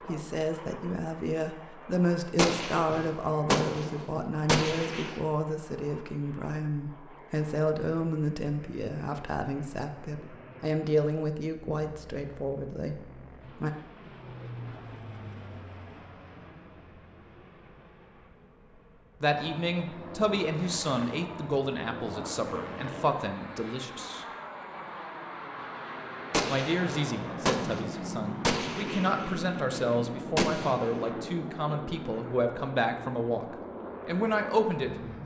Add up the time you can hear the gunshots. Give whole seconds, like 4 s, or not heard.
8 s.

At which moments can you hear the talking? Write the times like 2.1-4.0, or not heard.
0.1-13.7, 19.2-24.2, 26.5-35.2.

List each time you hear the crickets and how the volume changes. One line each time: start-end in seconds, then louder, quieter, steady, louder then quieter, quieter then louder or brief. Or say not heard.
not heard.